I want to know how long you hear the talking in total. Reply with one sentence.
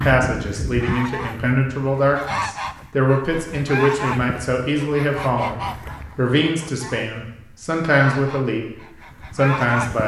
The talking can be heard for 9 seconds in total.